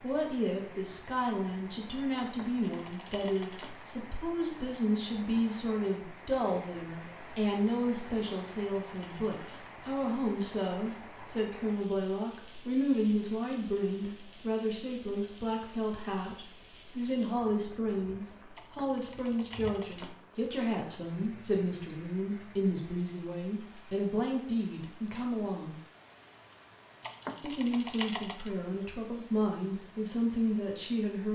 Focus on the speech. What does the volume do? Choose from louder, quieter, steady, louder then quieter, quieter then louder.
steady.